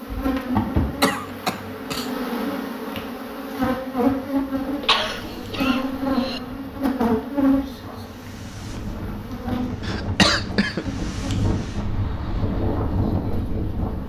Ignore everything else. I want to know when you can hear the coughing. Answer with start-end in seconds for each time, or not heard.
1.0-2.1, 4.8-6.4, 9.8-10.8.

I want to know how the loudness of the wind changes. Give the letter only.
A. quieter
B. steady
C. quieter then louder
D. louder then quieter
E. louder
E.